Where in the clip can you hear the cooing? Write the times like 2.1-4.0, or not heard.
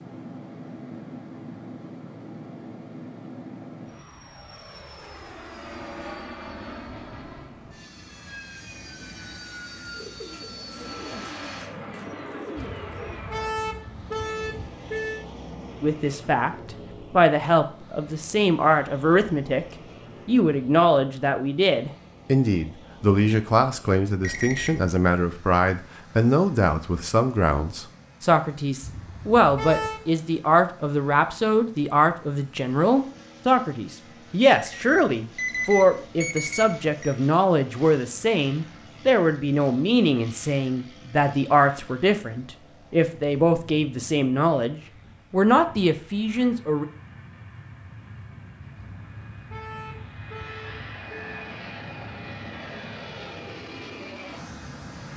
9.9-13.2.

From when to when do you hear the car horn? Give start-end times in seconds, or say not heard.
12.6-15.2, 28.8-30.0, 48.8-51.5.